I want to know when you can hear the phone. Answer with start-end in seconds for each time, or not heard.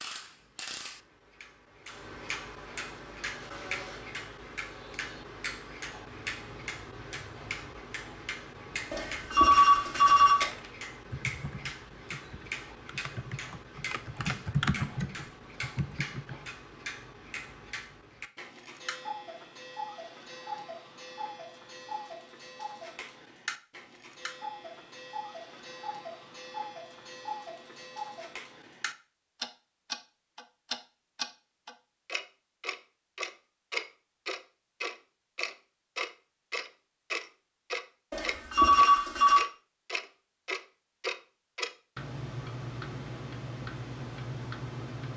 8.9-10.5, 38.1-39.5.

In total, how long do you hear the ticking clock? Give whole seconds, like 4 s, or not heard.
45 s.